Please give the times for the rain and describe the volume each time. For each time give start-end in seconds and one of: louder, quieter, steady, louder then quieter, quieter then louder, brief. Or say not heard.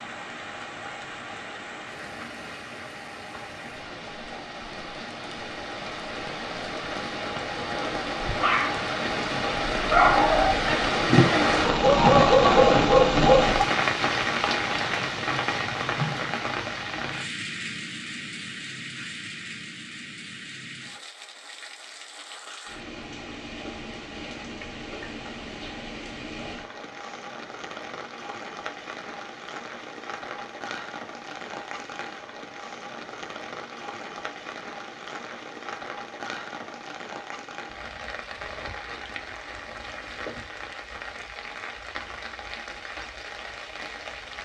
0.0-44.4 louder then quieter.